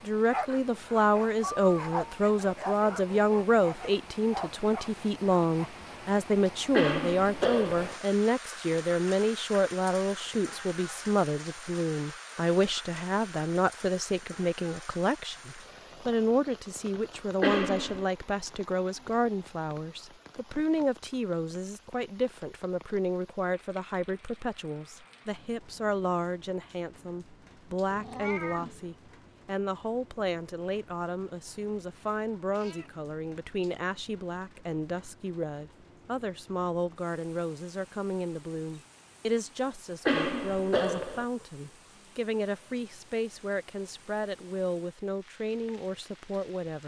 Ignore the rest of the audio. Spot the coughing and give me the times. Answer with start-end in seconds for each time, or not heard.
6.7-8.0, 17.4-18.1, 40.0-41.2.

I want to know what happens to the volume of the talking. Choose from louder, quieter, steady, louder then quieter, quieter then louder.
quieter.